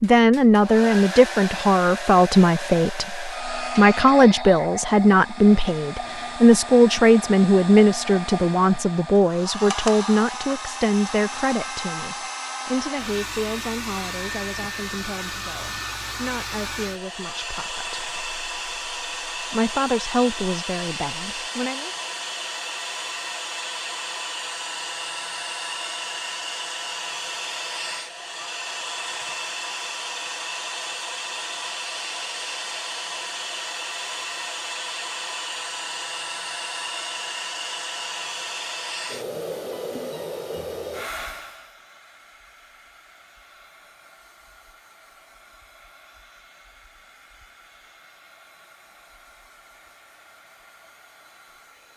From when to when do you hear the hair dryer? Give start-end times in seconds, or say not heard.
0.0-51.9.